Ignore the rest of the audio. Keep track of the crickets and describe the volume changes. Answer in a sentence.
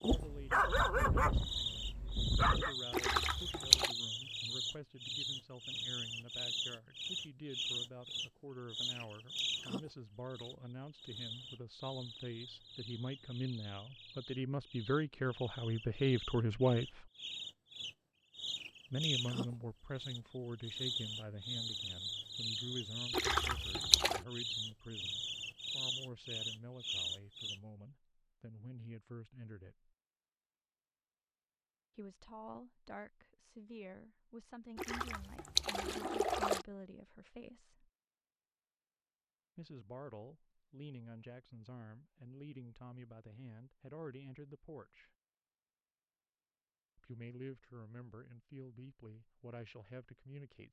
The volume of the crickets goes down, then up.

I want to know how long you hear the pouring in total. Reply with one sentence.
You can hear the pouring for 4 seconds altogether.